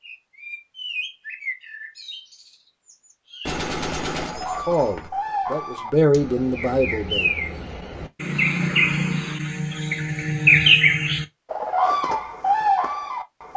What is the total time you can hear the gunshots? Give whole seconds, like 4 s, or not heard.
2 s.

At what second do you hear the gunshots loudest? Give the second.
4 s.